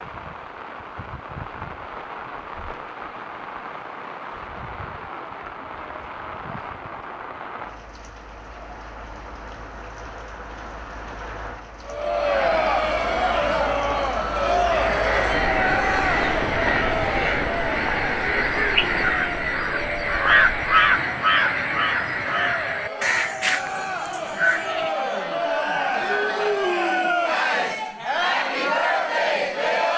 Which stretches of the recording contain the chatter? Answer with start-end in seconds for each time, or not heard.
11.8-29.9.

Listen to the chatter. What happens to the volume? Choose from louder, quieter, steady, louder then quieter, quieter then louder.
quieter then louder.